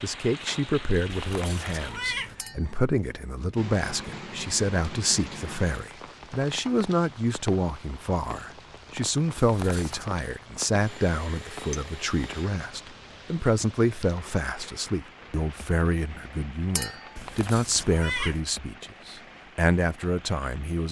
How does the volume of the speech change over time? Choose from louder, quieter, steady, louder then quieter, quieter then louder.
steady.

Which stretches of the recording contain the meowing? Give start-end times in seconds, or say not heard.
1.1-2.4, 9.3-10.1, 17.1-18.4.